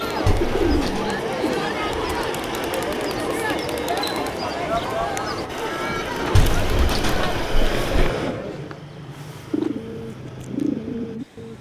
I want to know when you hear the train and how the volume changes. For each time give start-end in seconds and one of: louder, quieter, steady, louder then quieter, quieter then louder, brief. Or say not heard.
0.0-11.5 quieter.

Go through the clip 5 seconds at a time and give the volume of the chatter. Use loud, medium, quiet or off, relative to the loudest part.
loud, loud, off.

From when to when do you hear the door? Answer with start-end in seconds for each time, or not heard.
0.2-1.1, 6.3-8.1.